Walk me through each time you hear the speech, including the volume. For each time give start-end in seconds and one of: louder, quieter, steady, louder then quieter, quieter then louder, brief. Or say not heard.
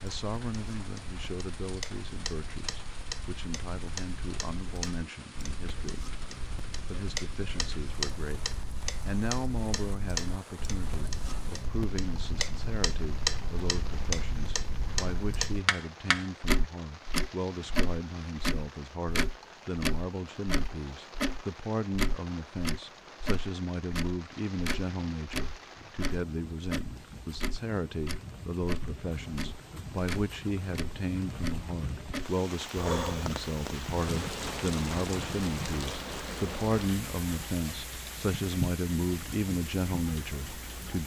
0.0-41.0 louder.